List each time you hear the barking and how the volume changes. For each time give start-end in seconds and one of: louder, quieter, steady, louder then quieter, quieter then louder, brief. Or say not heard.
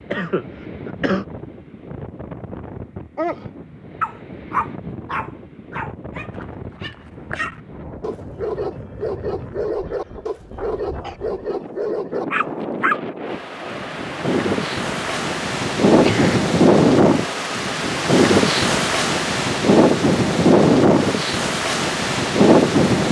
3.1-14.1 quieter then louder.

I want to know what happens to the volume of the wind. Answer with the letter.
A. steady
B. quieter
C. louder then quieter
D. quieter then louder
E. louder
E.